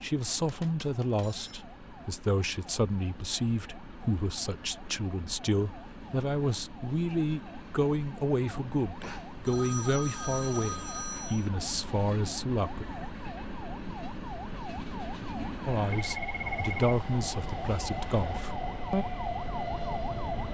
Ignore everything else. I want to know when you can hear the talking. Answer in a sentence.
You can hear the talking from 0.0 to 12.8 s and from 15.7 to 19.1 s.